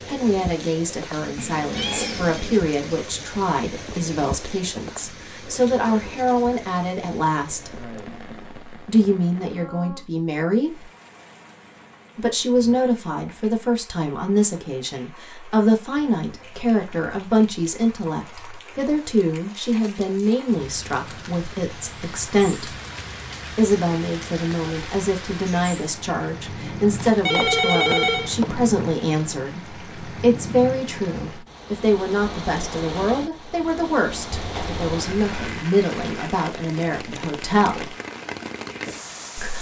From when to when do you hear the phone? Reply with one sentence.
You can hear the phone from 26.9 to 28.6 s.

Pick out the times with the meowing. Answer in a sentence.
You can hear the meowing from 1.4 to 2.6 s and from 34.3 to 35.6 s.